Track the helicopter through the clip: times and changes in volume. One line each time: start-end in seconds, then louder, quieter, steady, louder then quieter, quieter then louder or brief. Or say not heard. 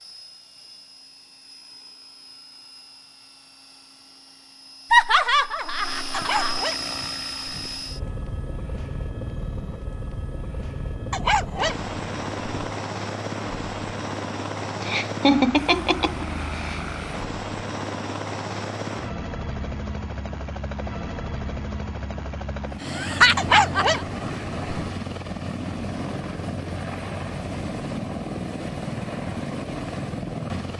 0.0-30.7 louder.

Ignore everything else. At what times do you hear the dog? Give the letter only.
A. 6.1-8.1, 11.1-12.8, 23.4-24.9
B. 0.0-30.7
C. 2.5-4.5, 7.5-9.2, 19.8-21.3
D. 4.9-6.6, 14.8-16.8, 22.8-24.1
A.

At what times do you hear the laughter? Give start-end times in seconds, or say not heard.
4.9-6.6, 14.8-16.8, 22.8-24.1.